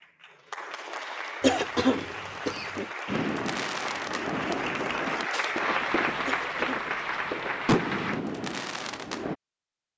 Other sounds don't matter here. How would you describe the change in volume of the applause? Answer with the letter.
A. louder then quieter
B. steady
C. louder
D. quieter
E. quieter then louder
C.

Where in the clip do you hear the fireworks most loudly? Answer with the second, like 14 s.
8 s.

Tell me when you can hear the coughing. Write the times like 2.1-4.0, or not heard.
1.4-2.9, 6.2-6.8.